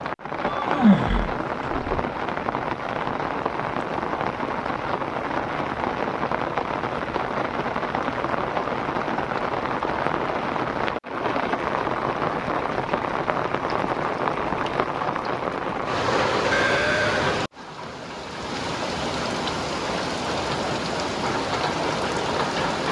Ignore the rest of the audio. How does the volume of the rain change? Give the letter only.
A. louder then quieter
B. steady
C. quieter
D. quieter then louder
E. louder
B.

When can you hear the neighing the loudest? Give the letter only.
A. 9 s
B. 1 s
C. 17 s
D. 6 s
B.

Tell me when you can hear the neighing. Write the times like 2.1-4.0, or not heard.
0.5-2.0, 16.5-17.4.